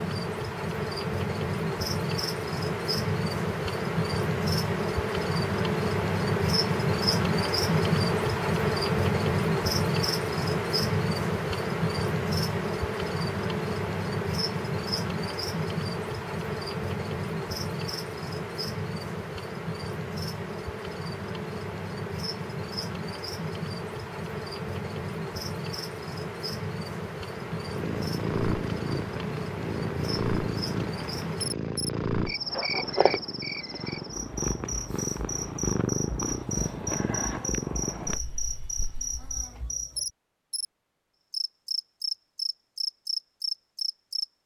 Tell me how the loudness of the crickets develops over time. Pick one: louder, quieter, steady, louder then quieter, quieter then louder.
quieter.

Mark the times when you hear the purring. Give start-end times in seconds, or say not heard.
27.6-39.4.